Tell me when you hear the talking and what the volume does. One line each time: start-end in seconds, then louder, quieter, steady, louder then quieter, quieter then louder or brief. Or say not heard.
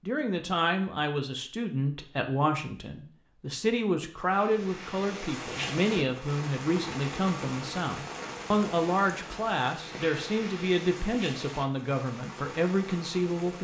0.1-13.5 steady.